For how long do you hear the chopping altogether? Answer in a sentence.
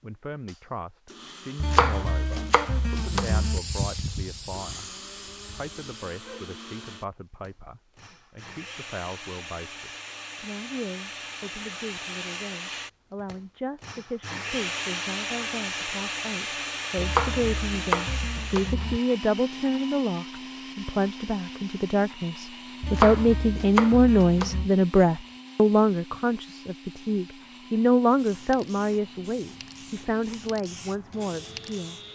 The chopping can be heard for 6 seconds in total.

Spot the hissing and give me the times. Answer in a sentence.
You can hear the hissing from 2.9 to 6.5 s and from 28.1 to 32.1 s.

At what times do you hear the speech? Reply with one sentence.
The speech can be heard from 0.0 to 4.8 s and from 5.5 to 31.9 s.